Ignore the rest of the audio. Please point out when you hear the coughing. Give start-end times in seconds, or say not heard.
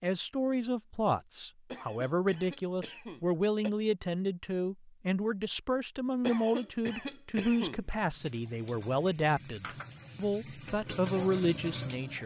1.7-3.7, 6.2-7.8.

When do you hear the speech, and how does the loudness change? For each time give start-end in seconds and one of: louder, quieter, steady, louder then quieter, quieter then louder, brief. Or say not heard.
0.0-12.2 steady.